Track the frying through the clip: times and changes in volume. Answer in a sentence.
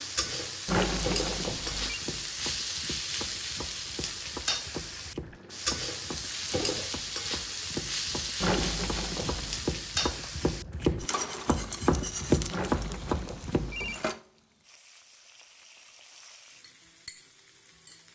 The frying can be heard from 0.0 to 18.1 s, getting quieter.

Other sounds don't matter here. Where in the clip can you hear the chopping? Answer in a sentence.
You can hear the chopping from 1.9 to 13.9 s.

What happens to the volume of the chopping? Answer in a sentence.
The loudness of the chopping goes up.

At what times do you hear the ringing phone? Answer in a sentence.
You can hear the ringing phone from 0.7 to 2.0 s, from 8.4 to 9.6 s and from 12.5 to 14.0 s.